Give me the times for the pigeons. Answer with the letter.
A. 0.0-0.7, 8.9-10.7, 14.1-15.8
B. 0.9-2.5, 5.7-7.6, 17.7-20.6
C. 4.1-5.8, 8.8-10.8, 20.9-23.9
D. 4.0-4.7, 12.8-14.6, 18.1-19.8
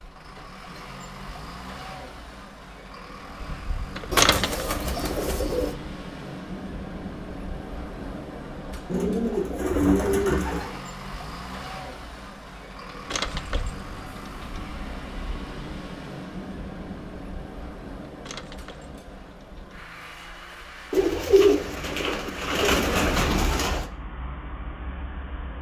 C.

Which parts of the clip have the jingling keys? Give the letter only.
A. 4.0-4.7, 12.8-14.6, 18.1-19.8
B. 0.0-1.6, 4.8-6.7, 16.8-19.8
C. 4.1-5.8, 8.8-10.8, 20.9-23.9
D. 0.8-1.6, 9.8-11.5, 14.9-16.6
A.